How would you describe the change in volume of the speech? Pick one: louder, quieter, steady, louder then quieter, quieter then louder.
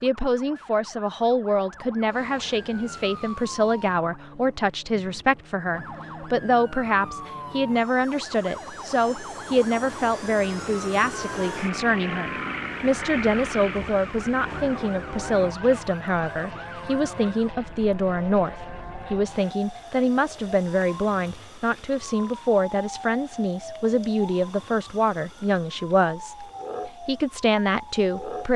steady.